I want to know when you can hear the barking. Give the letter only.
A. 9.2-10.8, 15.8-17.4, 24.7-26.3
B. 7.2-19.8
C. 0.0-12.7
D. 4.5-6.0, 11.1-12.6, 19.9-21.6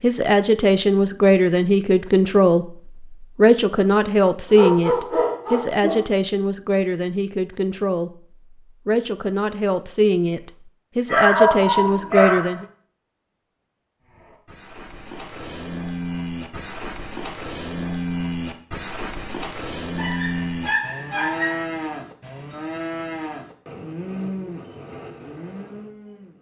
D.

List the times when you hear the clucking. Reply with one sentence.
You can't hear the clucking here.